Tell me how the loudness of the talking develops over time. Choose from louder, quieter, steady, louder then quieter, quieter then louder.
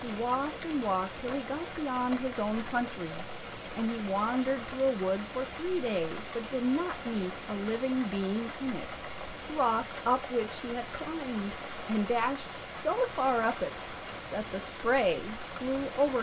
steady.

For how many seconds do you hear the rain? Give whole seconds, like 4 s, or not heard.
16 s.